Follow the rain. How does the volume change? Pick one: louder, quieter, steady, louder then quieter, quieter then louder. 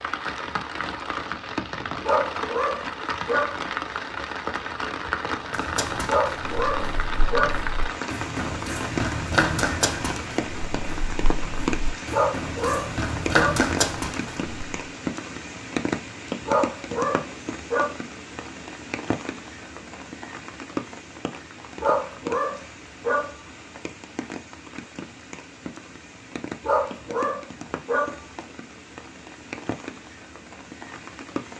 quieter.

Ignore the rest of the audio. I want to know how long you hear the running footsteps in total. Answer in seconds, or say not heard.
9 s.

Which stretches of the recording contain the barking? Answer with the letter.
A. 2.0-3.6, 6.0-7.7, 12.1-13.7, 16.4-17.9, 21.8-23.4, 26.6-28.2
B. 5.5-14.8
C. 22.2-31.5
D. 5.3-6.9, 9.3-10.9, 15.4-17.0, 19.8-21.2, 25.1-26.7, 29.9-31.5
A.